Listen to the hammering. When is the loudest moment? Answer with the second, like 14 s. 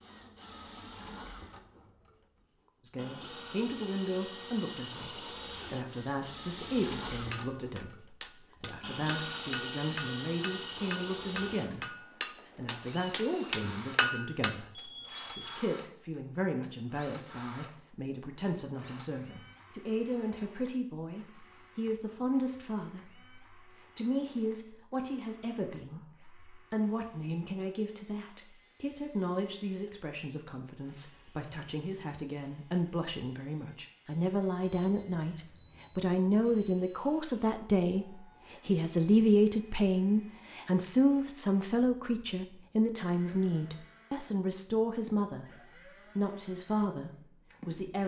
14 s.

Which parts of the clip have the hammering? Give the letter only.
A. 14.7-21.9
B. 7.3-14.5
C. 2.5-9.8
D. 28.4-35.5
B.